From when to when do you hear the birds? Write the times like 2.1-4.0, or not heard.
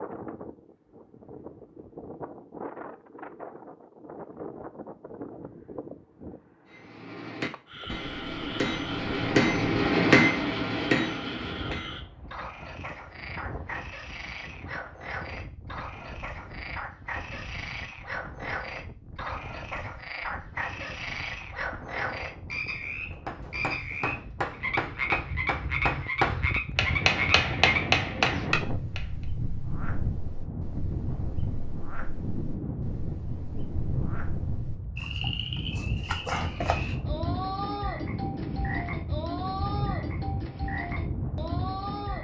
not heard.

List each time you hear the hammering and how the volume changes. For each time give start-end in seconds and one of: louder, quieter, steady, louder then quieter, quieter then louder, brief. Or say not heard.
6.7-11.9 louder then quieter
23.2-29.2 louder.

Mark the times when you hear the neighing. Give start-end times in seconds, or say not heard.
not heard.